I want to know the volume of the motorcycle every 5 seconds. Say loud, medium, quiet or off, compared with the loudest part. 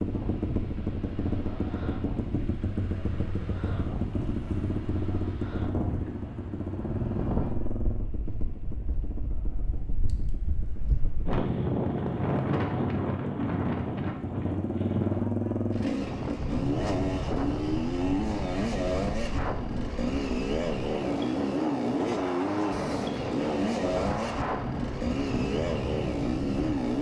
medium, medium, medium, loud, loud, loud.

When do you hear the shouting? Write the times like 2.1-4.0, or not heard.
not heard.